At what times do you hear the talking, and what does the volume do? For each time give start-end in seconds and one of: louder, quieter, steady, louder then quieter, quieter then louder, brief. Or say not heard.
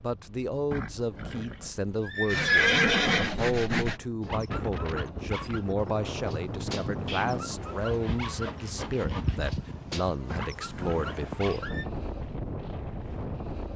0.0-11.8 steady.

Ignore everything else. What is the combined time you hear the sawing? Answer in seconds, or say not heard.
4 s.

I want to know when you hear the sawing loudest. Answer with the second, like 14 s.
4 s.